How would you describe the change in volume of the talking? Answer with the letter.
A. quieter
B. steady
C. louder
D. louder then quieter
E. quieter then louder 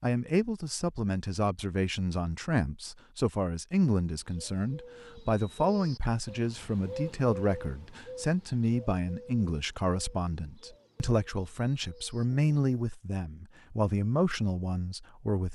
B.